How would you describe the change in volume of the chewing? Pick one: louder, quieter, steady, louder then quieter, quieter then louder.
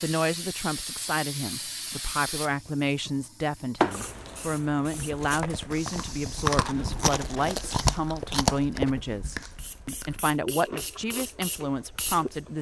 quieter.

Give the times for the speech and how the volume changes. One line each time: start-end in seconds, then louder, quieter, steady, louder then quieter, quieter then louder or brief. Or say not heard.
0.0-12.5 steady.